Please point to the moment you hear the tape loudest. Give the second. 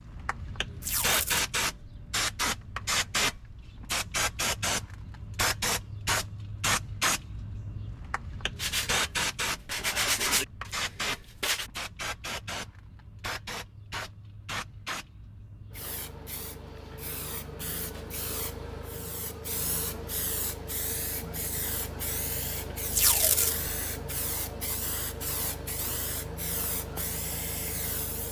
23 s.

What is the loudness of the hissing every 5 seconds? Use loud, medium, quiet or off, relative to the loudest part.
loud, loud, medium, medium, medium, medium.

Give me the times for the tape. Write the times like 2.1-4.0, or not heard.
0.8-1.4, 22.9-23.7.